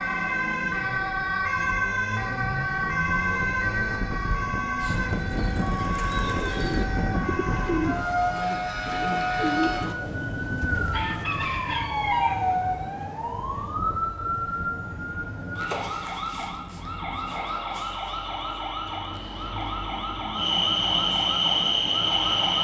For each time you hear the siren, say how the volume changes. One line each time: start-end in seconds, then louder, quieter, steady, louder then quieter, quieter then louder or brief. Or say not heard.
0.0-22.5 quieter.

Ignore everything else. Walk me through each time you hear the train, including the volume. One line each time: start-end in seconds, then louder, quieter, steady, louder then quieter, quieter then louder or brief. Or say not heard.
14.6-22.5 louder.